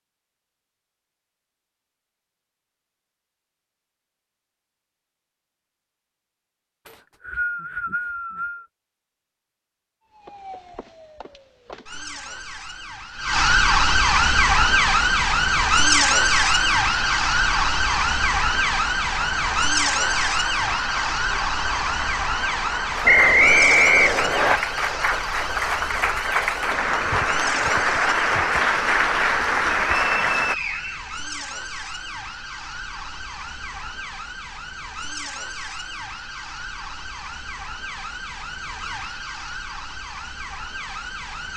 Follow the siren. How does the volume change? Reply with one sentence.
The volume of the siren goes down.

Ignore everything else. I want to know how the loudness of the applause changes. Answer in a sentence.
The loudness of the applause goes up.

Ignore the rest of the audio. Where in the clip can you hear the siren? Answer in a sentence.
The siren can be heard from 10.1 to 41.5 s.